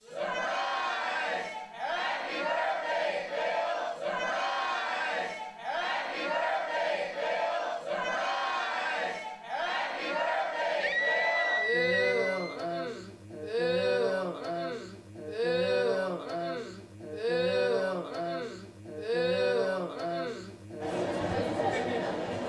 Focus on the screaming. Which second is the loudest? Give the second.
11 s.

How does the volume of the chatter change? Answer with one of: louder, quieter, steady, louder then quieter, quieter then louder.
steady.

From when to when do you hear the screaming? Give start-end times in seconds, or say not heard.
10.8-12.6.